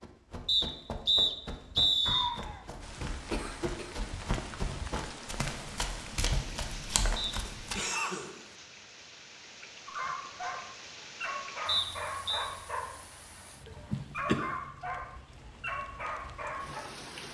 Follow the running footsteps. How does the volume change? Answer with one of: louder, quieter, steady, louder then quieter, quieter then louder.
louder.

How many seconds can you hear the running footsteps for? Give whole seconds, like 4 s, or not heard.
8 s.